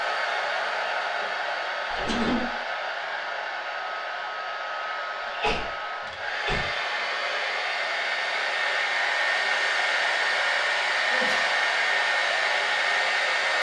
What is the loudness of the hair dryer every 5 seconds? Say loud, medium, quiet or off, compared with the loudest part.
medium, loud, loud.